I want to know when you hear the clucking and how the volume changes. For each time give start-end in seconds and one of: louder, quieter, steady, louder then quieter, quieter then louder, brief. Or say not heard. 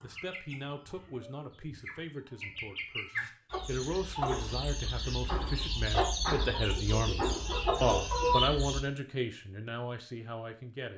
0.0-8.8 louder.